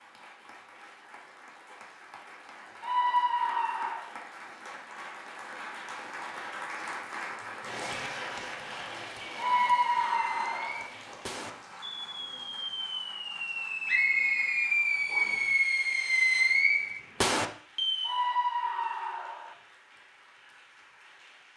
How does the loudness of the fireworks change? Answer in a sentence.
The loudness of the fireworks goes up.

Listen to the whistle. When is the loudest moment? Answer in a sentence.
The volume of the whistle peaks at 14 seconds.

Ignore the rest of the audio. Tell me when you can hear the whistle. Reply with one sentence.
The whistle can be heard from 13.8 to 15.4 s.